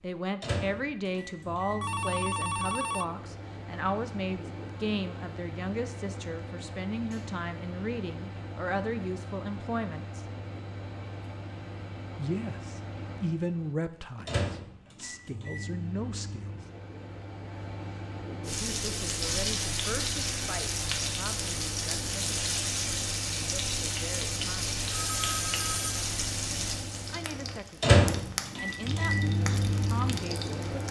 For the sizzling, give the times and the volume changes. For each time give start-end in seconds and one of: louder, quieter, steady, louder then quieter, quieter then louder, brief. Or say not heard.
18.4-30.8 quieter.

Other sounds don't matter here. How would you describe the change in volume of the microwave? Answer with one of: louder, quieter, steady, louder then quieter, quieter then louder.
louder.